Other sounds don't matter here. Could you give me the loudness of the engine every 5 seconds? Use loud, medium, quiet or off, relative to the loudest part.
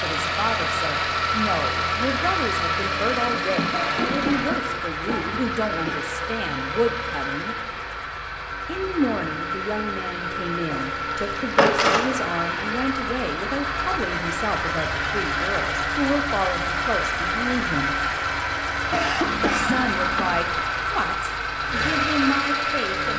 loud, medium, loud, loud, loud.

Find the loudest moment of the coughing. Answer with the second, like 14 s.
19 s.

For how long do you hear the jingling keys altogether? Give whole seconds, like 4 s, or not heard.
4 s.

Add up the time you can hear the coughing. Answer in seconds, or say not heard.
3 s.